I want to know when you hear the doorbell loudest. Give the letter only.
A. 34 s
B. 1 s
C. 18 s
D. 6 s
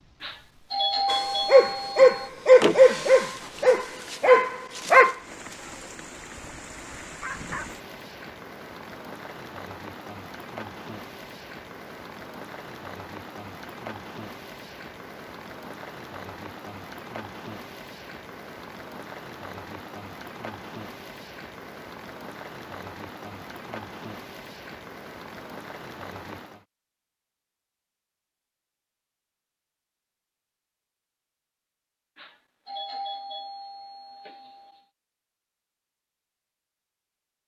B.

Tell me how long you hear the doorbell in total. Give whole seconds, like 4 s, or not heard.
5 s.